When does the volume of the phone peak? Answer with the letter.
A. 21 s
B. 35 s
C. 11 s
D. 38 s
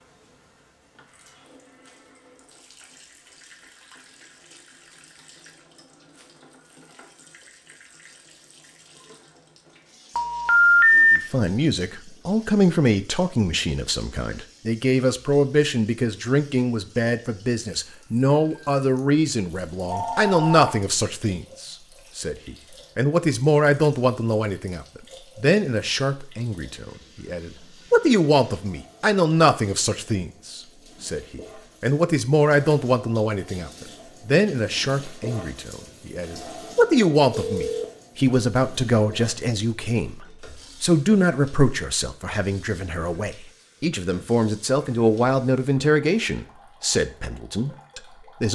C.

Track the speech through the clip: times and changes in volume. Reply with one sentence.
The speech can be heard from 11.1 to 48.5 s, at a steady volume.